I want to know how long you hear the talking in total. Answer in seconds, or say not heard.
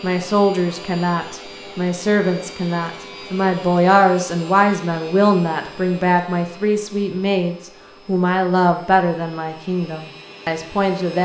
11 s.